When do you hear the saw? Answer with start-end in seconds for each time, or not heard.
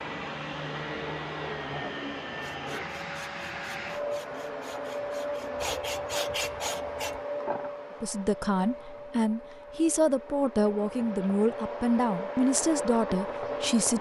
2.4-7.2.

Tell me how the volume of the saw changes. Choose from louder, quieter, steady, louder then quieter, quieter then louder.
louder.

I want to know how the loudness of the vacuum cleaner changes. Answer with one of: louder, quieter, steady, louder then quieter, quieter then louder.
quieter then louder.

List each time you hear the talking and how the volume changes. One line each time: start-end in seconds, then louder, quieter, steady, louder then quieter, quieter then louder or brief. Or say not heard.
8.0-13.9 steady.